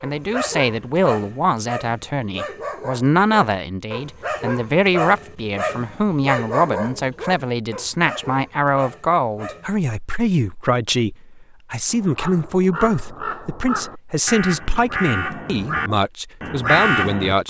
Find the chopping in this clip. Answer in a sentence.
You can't hear the chopping here.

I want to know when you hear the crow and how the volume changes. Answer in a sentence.
You can hear the crow from 11.8 to 17.4 s, getting louder.